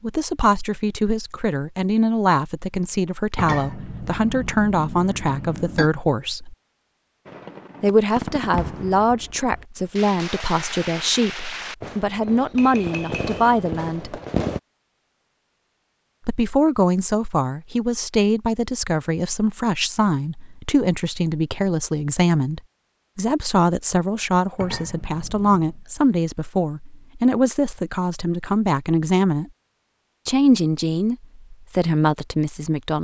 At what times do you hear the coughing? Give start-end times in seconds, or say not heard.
not heard.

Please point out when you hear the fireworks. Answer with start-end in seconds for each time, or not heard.
7.2-14.6.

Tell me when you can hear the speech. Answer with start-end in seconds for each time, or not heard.
0.0-6.5, 7.8-14.2, 16.2-29.5, 30.2-32.9.